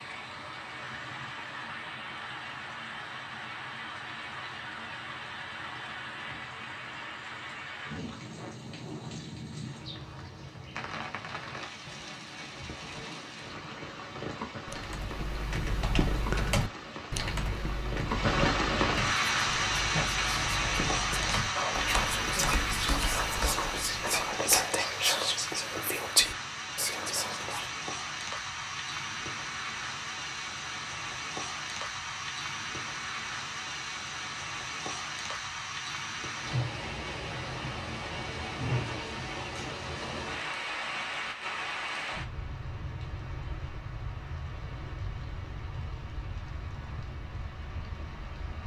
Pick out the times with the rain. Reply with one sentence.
You can hear the rain from 0.0 to 48.6 s.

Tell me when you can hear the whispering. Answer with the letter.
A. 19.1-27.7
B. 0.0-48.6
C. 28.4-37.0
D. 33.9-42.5
A.